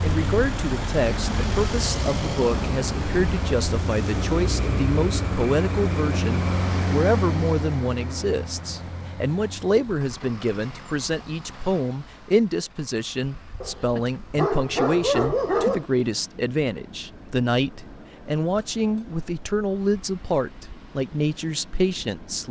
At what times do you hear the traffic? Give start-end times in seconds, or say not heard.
0.0-22.4.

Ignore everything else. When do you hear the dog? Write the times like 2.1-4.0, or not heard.
13.6-15.8.